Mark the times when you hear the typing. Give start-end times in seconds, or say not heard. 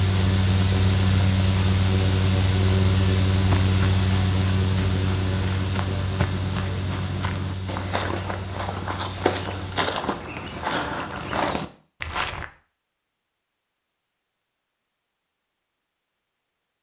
not heard.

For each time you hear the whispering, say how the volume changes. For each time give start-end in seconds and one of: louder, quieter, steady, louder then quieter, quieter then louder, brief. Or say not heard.
not heard.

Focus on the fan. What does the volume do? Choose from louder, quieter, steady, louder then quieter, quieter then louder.
quieter.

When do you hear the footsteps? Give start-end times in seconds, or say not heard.
3.3-12.4.